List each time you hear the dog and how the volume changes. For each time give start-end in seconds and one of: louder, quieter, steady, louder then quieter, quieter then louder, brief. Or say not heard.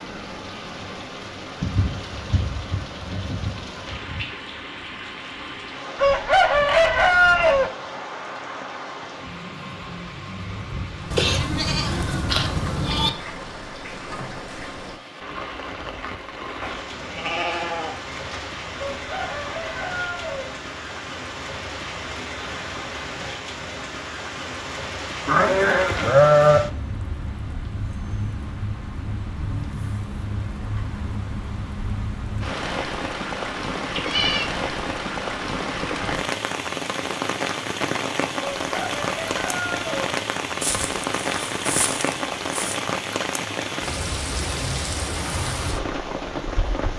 not heard.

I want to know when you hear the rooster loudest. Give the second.
7 s.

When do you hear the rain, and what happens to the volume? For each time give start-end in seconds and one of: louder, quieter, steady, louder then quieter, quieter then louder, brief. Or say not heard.
0.0-46.9 louder.